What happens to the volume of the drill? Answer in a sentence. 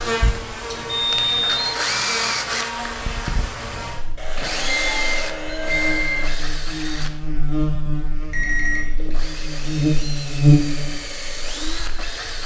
The volume of the drill goes down, then up.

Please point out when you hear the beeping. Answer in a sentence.
You can hear the beeping from 0.7 to 1.6 s, from 4.2 to 6.3 s and from 8.3 to 8.9 s.